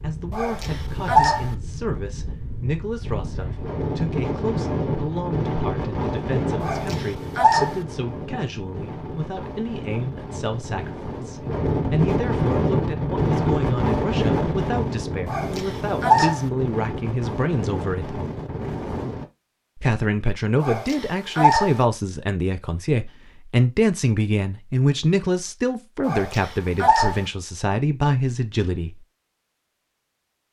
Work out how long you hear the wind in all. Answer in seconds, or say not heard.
19 s.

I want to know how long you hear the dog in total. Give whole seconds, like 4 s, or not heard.
6 s.